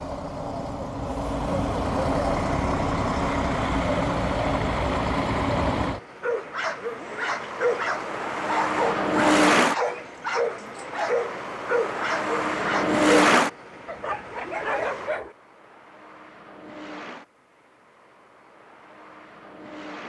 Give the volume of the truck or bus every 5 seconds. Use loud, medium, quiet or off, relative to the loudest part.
loud, loud, loud, quiet.